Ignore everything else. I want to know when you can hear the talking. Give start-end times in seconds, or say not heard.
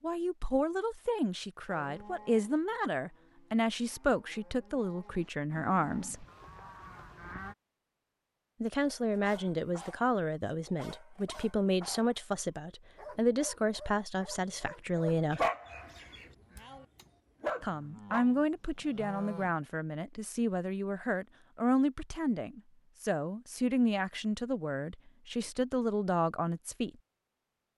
0.0-6.2, 8.6-15.5, 17.6-26.9.